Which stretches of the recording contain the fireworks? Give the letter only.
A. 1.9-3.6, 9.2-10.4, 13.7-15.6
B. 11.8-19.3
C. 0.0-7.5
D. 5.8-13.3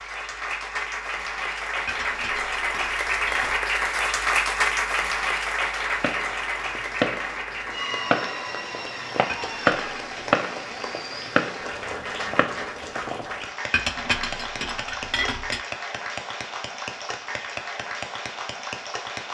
D.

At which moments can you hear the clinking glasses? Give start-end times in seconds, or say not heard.
1.9-3.6, 9.2-10.4, 13.7-15.6.